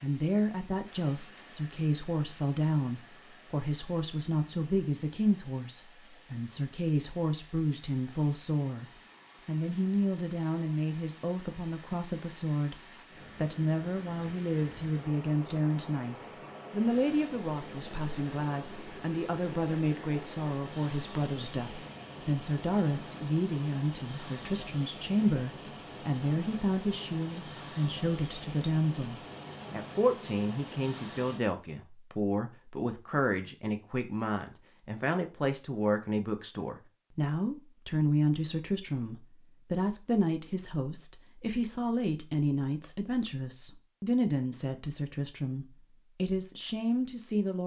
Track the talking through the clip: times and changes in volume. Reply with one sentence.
The talking can be heard from 0.0 to 47.6 s, at a steady volume.